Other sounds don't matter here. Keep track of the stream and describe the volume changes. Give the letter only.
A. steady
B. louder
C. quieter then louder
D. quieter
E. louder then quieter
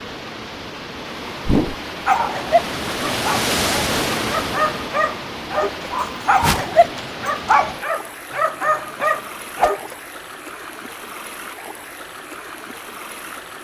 E.